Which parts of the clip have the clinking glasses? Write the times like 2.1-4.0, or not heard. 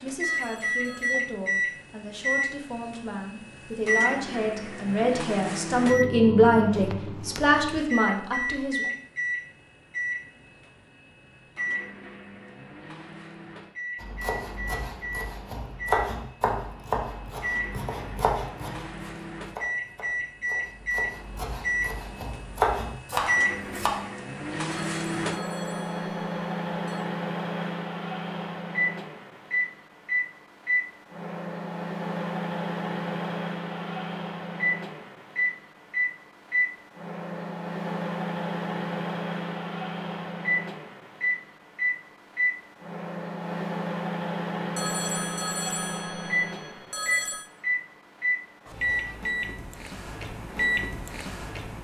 not heard.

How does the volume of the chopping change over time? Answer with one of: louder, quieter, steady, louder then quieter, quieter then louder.
quieter then louder.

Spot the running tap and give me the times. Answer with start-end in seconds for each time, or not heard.
not heard.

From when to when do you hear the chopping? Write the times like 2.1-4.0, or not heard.
14.0-23.9.